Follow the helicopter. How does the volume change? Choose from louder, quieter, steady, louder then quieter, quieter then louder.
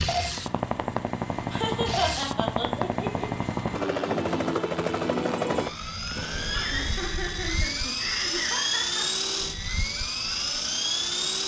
steady.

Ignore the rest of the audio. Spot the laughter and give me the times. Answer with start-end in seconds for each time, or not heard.
1.5-3.5, 6.5-9.2.